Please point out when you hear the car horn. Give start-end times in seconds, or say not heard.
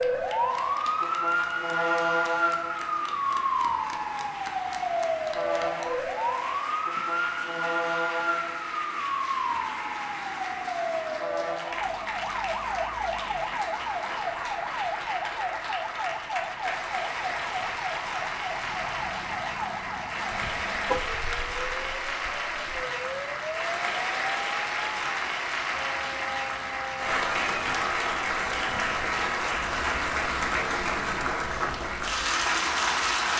20.3-21.6.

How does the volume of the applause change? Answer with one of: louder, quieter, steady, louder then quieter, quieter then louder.
louder.